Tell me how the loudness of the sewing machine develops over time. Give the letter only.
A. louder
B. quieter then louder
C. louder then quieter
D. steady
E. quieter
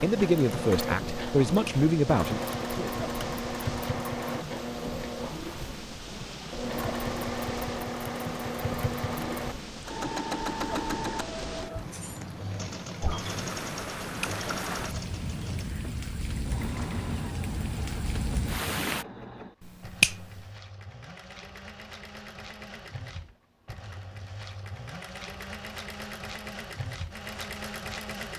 E.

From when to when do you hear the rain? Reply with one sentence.
You can hear the rain from 0.0 to 19.1 s.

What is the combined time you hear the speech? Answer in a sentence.
You can hear the speech for 3 seconds altogether.